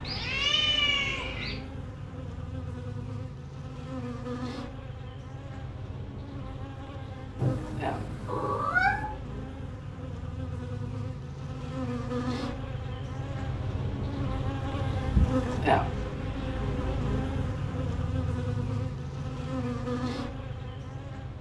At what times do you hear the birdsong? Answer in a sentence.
The birdsong can't be heard in this clip.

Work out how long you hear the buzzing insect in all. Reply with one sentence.
The buzzing insect can be heard for 21 seconds in total.